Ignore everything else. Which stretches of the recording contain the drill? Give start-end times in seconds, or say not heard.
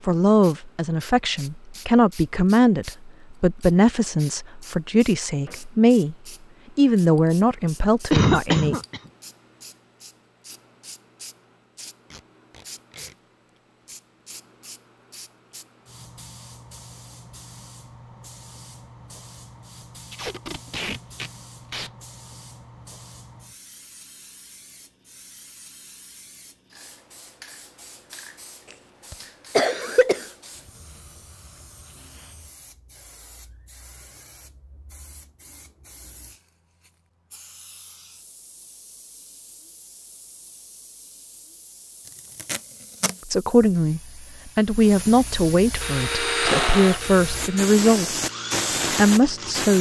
45.8-49.7.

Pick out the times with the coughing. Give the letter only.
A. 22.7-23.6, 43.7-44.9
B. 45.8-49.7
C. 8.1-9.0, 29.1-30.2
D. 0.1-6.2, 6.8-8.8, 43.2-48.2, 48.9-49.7
C.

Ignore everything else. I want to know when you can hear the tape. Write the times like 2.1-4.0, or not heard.
12.1-13.2, 20.1-21.9, 42.4-43.1.